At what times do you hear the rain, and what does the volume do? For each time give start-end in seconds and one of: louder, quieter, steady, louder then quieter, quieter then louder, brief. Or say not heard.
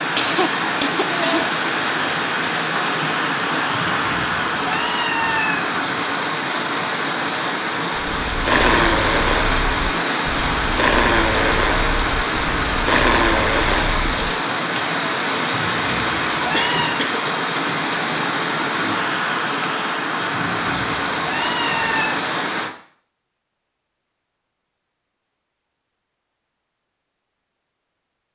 0.0-22.8 steady.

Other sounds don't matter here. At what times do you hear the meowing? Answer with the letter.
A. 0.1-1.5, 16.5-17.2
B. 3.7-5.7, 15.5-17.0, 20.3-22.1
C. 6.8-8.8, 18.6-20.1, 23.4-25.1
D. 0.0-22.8
B.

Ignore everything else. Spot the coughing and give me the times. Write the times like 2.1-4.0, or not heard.
0.1-1.5, 16.5-17.2.